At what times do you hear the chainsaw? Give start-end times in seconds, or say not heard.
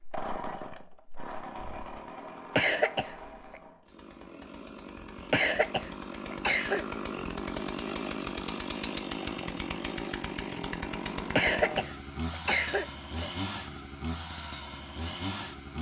0.0-15.7.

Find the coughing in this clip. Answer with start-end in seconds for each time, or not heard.
2.5-3.5, 5.3-6.8, 11.3-13.3.